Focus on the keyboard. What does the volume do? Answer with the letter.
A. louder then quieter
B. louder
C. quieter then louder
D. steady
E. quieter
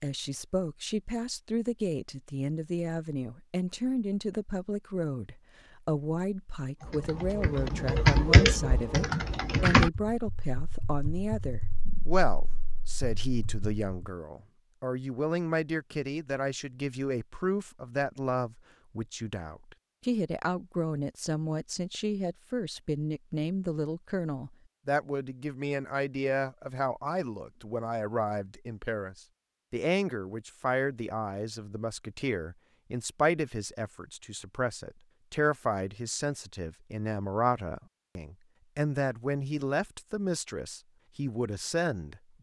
E.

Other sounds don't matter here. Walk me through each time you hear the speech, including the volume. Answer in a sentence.
The speech can be heard from 0.0 to 42.3 s, at a steady volume.